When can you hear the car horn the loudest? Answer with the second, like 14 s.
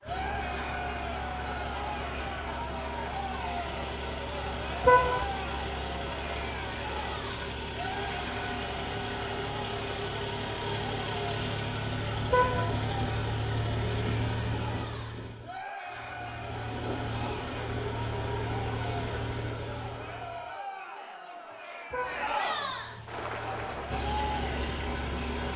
5 s.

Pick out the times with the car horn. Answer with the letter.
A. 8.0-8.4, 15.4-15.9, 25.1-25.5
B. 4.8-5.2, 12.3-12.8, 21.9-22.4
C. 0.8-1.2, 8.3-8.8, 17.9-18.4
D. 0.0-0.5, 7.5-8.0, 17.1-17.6
B.